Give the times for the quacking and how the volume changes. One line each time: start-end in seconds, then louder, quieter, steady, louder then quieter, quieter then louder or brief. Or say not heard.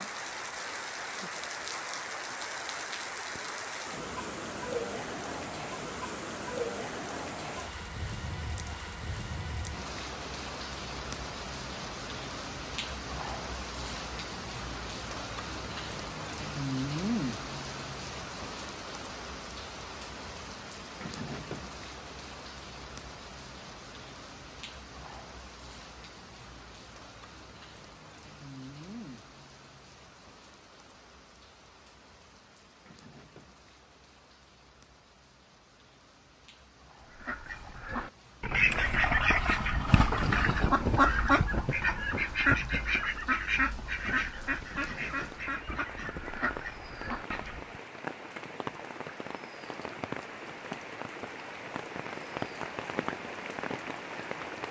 37.1-47.8 quieter.